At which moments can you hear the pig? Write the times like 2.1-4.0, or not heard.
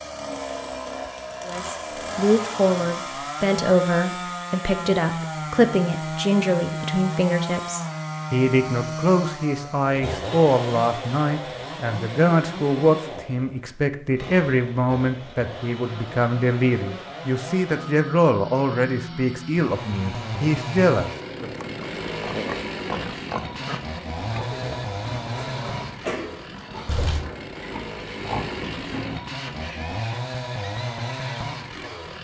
21.4-31.4.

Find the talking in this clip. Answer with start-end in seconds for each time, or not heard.
1.4-21.5.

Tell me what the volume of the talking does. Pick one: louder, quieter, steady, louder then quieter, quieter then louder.
steady.